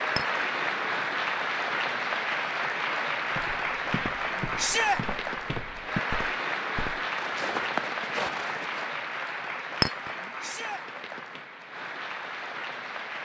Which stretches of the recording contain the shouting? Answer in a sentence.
You can hear the shouting from 4.5 to 5.0 s and from 10.4 to 10.8 s.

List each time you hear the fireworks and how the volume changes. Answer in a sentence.
You can't hear the fireworks here.